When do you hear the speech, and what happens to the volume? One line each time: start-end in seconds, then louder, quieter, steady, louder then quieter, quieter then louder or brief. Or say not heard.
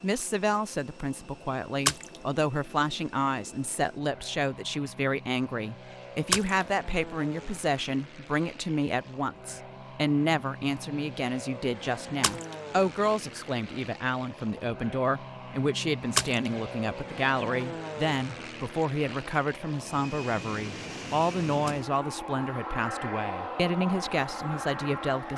0.0-25.3 steady.